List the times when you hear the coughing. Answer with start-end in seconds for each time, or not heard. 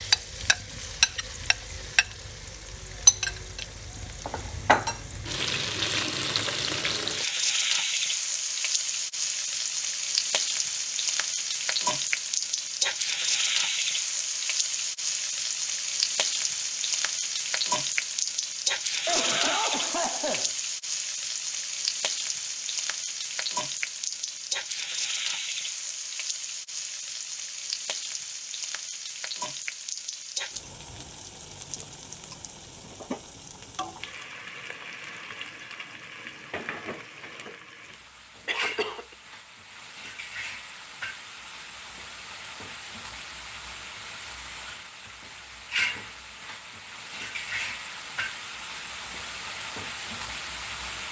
19.1-20.5, 38.5-39.0.